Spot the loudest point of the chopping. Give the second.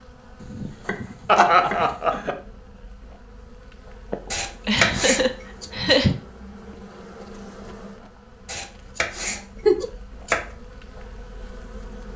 5 s.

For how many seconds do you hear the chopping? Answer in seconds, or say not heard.
5 s.